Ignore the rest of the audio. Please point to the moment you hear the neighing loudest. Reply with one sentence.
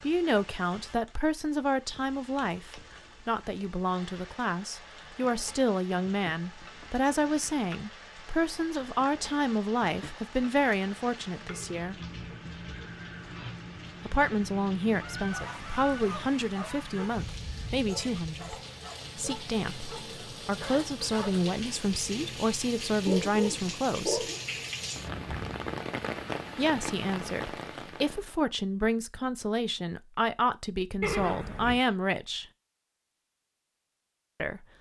The loudest moment of the neighing is at 31 seconds.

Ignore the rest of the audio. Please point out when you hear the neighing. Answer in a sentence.
The neighing can be heard from 11.4 to 13.4 s and from 31.0 to 31.8 s.